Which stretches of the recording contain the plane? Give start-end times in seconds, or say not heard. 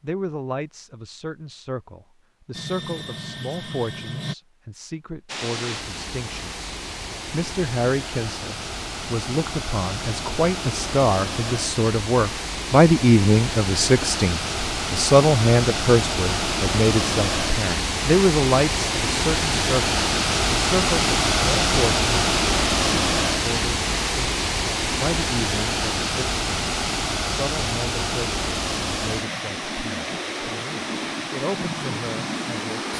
2.5-4.3.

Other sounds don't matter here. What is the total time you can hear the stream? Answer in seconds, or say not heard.
28 s.